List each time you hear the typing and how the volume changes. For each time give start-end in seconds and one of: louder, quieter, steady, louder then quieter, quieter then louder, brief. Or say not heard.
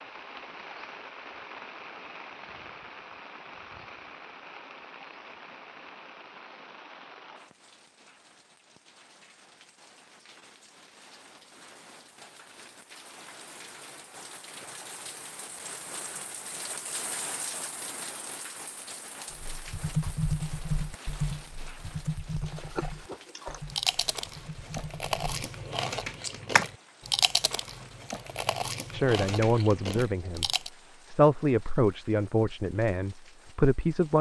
19.3-25.4 quieter
26.2-26.6 brief.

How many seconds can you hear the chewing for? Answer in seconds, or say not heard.
8 s.